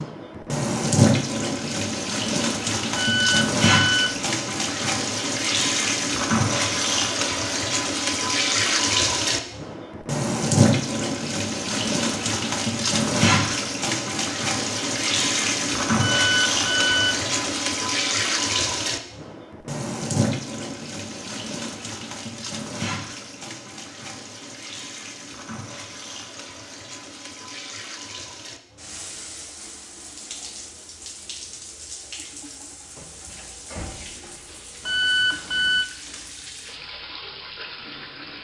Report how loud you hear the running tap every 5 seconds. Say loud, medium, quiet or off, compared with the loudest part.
loud, loud, loud, loud, medium, quiet, quiet, quiet.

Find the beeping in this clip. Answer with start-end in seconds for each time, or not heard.
3.0-4.2, 16.0-17.2, 34.9-35.9.